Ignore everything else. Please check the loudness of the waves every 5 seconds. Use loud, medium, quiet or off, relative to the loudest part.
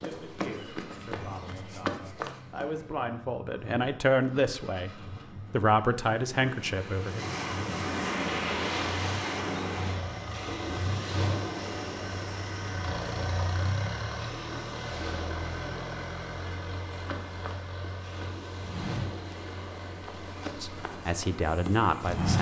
off, loud, medium, medium, quiet.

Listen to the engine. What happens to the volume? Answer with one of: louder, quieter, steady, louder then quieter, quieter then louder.
louder then quieter.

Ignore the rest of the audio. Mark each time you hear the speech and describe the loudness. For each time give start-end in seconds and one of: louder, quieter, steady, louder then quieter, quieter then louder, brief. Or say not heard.
0.0-7.2 louder
20.6-22.3 brief.